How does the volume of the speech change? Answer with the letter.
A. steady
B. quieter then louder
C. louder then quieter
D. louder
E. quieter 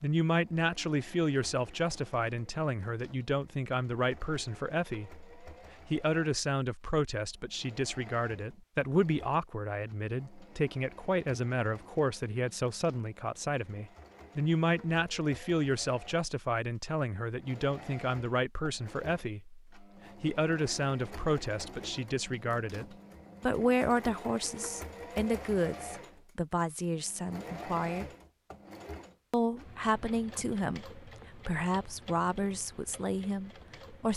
A.